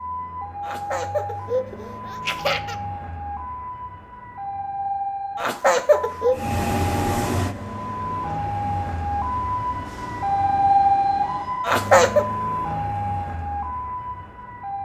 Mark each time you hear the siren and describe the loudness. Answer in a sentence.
You can hear the siren from 0.0 to 14.8 s, getting louder then quieter.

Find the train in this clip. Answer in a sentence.
You can hear the train from 6.3 to 11.7 s.